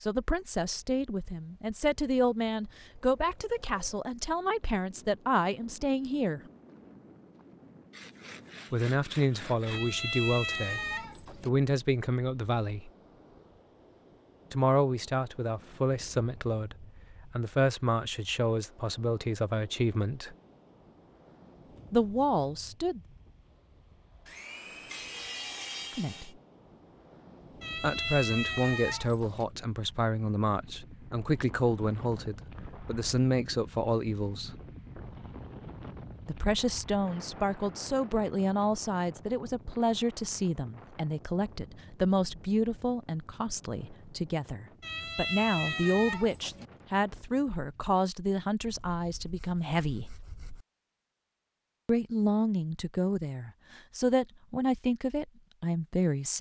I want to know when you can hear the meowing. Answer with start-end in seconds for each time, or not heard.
9.7-11.5, 27.6-29.4, 44.8-46.7.